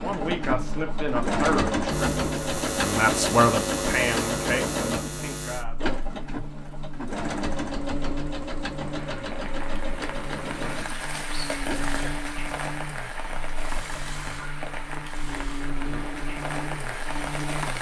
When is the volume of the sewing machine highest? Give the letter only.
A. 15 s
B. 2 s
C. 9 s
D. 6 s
B.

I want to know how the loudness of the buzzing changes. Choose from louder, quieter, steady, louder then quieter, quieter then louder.
quieter.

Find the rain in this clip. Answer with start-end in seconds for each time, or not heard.
8.8-17.7.